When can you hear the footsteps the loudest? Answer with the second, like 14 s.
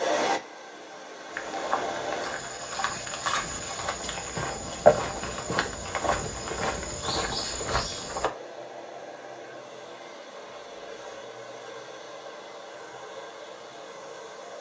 5 s.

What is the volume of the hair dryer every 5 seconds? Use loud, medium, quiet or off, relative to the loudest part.
loud, medium, medium.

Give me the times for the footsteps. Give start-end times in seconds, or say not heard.
1.3-8.3.